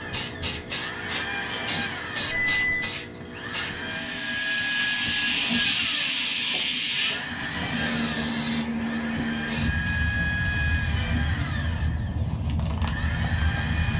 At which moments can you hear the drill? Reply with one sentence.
The drill can be heard from 0.0 to 13.9 s.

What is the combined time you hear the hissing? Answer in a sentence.
The hissing can be heard for 14 seconds in total.